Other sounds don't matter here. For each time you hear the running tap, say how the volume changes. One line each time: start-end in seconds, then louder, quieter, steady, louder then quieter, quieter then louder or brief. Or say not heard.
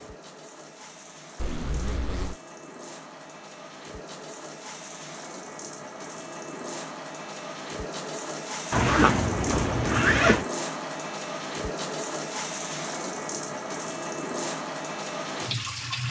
0.0-16.0 louder.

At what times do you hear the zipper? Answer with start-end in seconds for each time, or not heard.
1.4-2.4, 8.7-10.4.